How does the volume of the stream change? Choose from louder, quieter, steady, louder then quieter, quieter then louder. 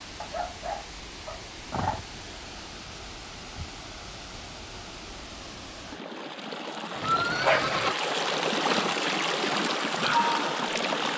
louder.